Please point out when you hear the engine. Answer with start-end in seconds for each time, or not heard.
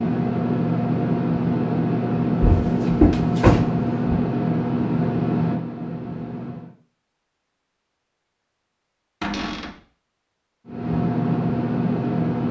0.0-6.8, 10.7-12.4.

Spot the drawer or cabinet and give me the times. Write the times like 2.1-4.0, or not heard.
2.4-4.2, 9.2-9.8.